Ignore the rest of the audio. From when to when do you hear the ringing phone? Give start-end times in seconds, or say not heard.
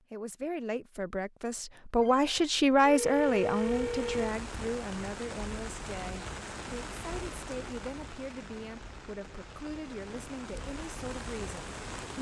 2.0-4.3.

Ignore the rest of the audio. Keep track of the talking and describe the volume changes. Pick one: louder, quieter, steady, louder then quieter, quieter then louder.
quieter.